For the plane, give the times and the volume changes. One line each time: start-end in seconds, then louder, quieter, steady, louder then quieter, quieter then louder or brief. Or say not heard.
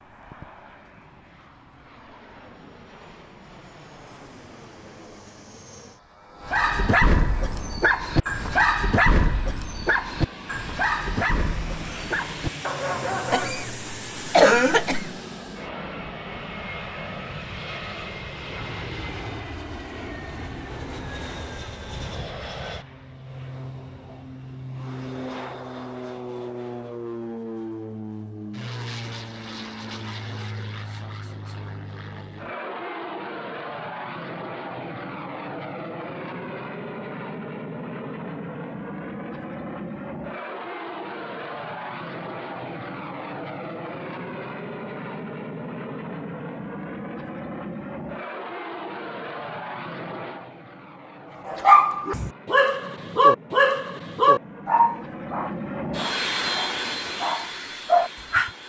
0.0-58.6 louder.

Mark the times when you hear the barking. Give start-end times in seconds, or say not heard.
6.5-13.7, 51.5-58.5.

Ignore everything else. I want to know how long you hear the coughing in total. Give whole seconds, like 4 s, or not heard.
2 s.